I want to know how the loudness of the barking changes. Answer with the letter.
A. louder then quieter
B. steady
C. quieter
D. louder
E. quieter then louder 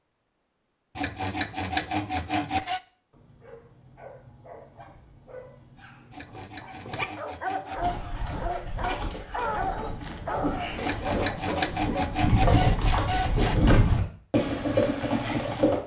D.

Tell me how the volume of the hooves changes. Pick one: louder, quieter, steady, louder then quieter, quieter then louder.
louder.